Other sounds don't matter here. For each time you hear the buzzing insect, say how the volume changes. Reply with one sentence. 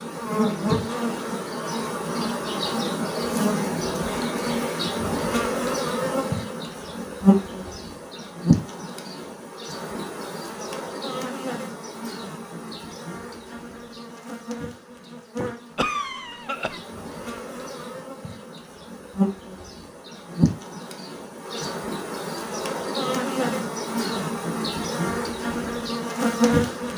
The buzzing insect can be heard from 0.0 to 26.9 s, getting quieter then louder.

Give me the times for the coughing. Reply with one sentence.
You can hear the coughing from 15.8 to 16.8 s.